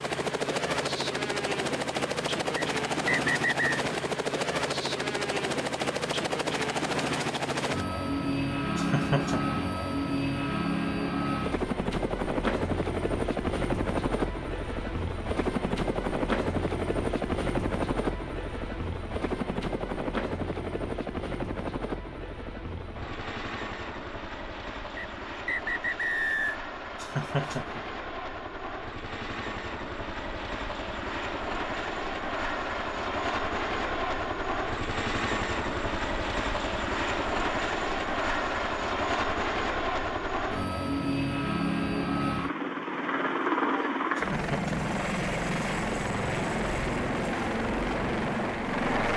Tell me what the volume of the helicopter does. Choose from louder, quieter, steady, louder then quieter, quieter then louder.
quieter then louder.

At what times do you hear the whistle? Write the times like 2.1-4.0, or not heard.
2.5-3.7, 24.9-26.6.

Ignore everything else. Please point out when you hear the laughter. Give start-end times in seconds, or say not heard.
8.8-9.6, 26.9-27.9, 44.1-44.9.